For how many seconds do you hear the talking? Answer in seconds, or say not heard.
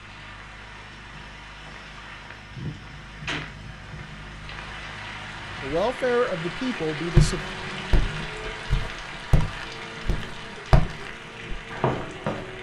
2 s.